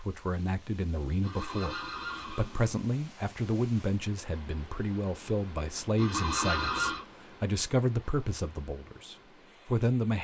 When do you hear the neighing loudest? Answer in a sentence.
The loudest moment of the neighing is at 7 seconds.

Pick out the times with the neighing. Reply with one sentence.
The neighing can be heard from 1.2 to 2.8 s and from 6.0 to 7.0 s.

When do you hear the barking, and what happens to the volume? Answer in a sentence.
The barking can't be heard in this clip.